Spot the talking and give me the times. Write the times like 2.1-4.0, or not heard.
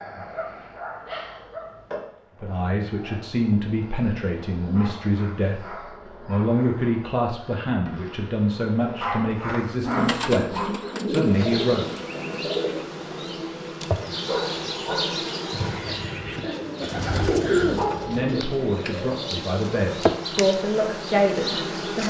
2.4-11.9, 18.1-22.0.